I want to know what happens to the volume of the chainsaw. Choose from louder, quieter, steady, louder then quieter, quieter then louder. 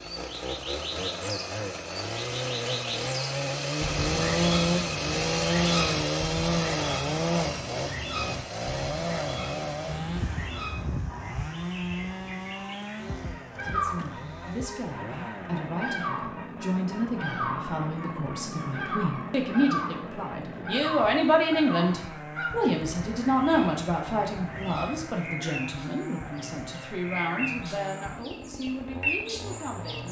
quieter.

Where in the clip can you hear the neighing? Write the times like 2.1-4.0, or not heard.
not heard.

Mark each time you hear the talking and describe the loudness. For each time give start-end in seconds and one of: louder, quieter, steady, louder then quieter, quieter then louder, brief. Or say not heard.
13.6-30.0 louder then quieter.